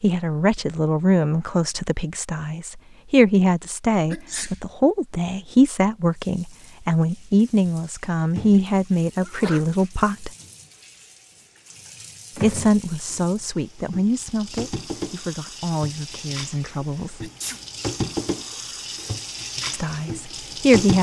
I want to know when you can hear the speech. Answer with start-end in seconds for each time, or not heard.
0.0-10.3, 12.4-17.3, 19.7-20.9.